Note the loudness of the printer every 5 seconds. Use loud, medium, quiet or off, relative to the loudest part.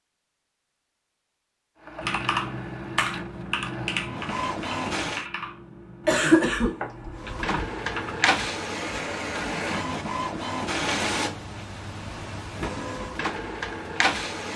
medium, loud, loud.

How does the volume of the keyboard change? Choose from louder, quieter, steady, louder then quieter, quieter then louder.
quieter.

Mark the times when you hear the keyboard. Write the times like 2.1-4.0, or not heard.
2.0-8.4.